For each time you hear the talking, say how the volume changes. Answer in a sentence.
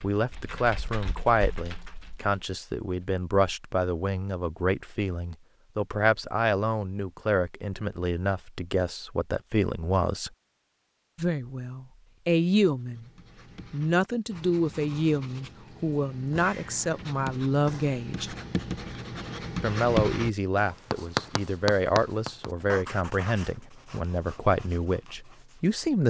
You can hear the talking from 0.0 to 10.3 s, at a steady volume; briefly from 11.2 to 13.1 s; from 13.7 to 18.4 s, at a steady volume; and from 19.6 to 26.0 s, at a steady volume.